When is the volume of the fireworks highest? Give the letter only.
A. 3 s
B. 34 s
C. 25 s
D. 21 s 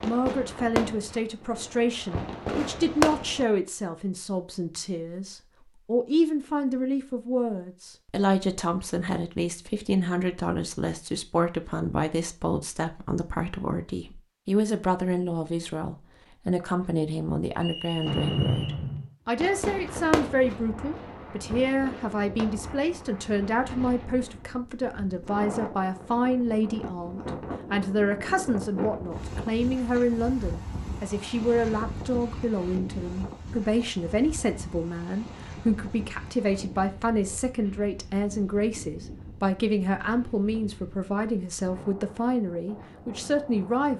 A.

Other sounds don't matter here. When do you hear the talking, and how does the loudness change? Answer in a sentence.
You can hear the talking from 0.0 to 43.9 s, at a steady volume.